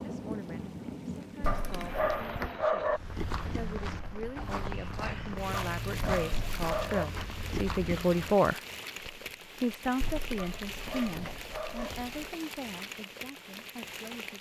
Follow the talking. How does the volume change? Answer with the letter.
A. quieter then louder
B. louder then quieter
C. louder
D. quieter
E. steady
B.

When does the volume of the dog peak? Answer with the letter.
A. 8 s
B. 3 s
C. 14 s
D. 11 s
B.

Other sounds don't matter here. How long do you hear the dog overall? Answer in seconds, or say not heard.
5 s.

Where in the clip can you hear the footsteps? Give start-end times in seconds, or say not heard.
2.8-8.5.